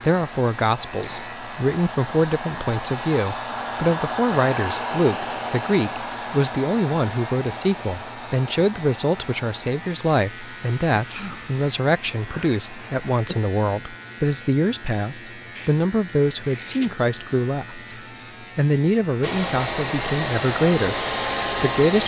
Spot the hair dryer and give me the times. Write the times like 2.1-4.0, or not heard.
0.1-13.0, 19.2-22.0.